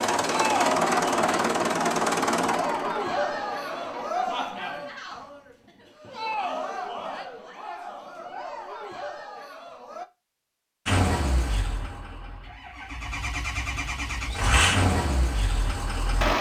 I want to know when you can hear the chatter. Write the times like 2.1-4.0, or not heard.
0.3-10.1.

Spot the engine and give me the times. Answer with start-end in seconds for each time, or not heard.
0.0-4.1, 10.8-16.3.